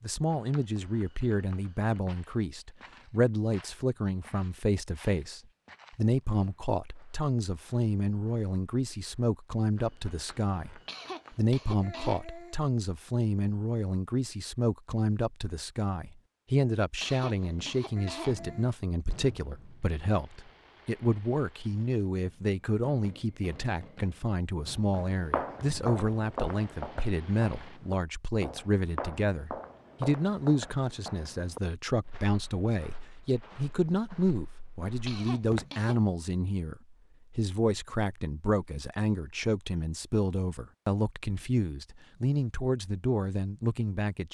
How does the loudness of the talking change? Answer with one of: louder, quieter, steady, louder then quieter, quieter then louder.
steady.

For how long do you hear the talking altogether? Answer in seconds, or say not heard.
44 s.